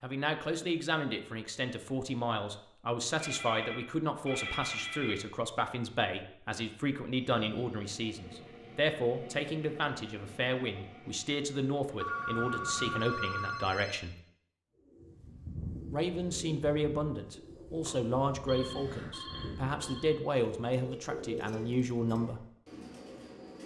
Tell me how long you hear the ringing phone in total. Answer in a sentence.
The ringing phone can be heard for 7 seconds in total.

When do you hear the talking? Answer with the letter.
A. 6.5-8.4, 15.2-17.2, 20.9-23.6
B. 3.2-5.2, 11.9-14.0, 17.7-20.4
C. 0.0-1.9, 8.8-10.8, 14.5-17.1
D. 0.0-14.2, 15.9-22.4
D.